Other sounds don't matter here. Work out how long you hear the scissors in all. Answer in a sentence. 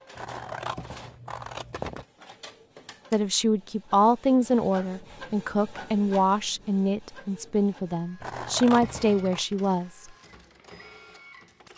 The scissors can be heard for 3 seconds in total.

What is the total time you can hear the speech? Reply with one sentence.
The speech can be heard for 7 seconds in total.